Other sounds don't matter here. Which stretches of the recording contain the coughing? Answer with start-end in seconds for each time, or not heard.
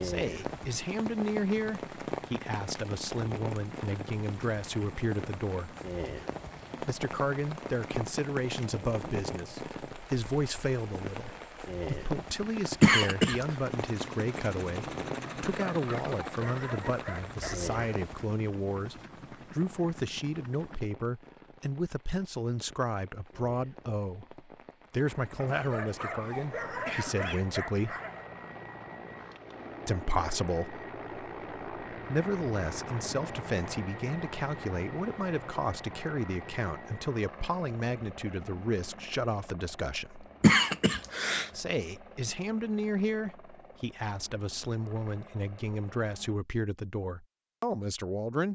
12.8-13.4, 25.4-27.4, 40.4-41.5.